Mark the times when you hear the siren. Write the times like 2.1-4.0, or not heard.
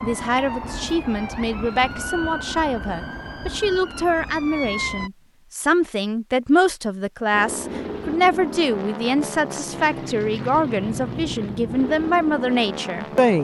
0.0-5.1.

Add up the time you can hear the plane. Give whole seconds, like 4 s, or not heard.
6 s.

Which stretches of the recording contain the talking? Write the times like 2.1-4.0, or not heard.
0.0-13.3.